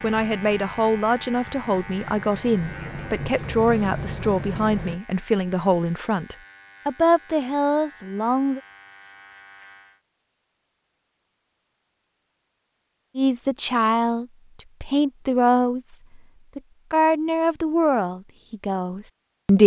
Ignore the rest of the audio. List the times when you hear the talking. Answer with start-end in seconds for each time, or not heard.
0.0-8.6, 13.2-15.9, 16.6-19.6.